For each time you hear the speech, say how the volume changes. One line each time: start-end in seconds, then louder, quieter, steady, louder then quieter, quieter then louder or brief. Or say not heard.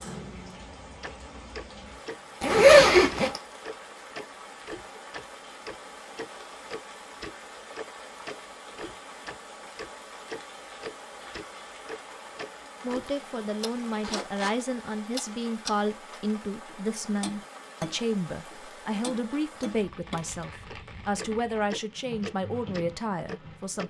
12.8-23.8 steady.